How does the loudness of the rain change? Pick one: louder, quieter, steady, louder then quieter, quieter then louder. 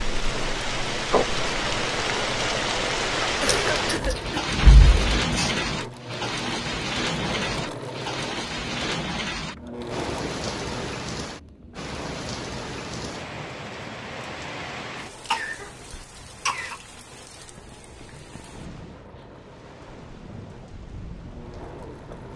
quieter.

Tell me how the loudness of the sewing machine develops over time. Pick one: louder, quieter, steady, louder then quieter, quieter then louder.
quieter.